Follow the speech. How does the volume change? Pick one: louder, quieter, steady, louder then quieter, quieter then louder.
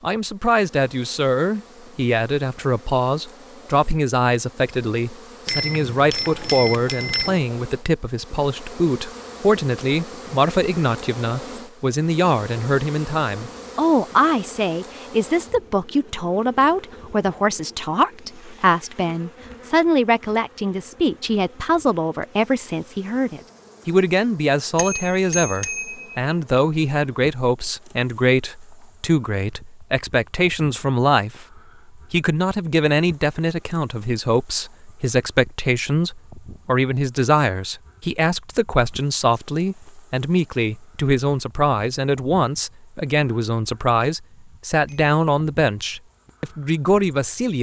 steady.